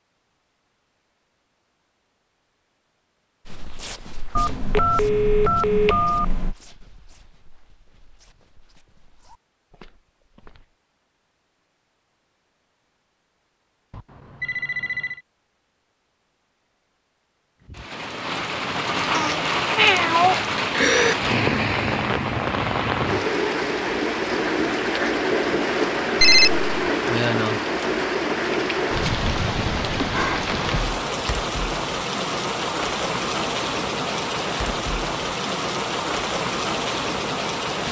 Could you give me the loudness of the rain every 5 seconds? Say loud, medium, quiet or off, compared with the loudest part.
off, off, off, loud, loud, loud, loud, loud.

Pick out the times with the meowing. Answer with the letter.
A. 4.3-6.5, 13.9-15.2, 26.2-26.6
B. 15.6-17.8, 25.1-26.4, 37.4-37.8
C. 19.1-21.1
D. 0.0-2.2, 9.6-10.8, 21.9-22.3
C.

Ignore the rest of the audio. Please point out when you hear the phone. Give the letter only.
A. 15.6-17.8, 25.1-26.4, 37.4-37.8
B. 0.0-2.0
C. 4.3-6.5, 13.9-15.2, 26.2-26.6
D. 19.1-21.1
C.